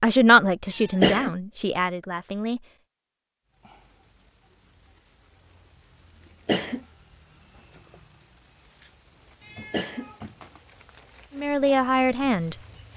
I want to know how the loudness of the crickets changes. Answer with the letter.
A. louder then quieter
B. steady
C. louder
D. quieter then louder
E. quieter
C.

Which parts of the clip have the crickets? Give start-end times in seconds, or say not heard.
3.5-12.9.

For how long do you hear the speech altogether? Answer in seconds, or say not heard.
4 s.